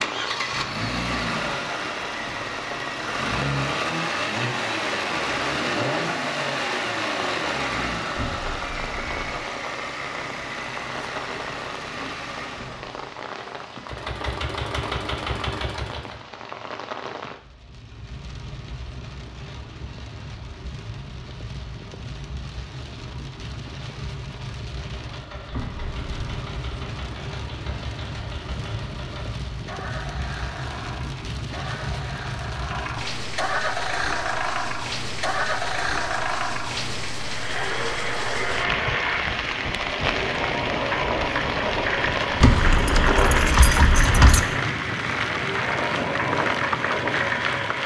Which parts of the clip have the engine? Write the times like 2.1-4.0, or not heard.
0.0-16.2, 25.0-47.8.